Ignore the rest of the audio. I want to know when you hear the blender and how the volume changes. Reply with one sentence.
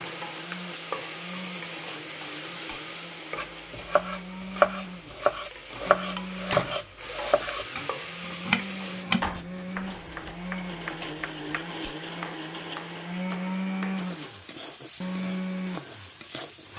You can hear the blender from 0.0 to 16.7 s, getting louder.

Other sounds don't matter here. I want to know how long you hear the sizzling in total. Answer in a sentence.
You can hear the sizzling for 12 seconds altogether.